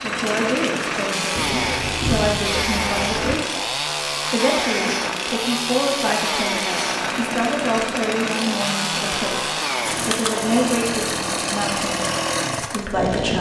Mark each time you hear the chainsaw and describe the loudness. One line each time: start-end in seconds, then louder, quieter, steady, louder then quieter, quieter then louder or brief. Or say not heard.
0.0-13.3 steady.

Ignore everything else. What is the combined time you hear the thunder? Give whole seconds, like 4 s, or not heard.
2 s.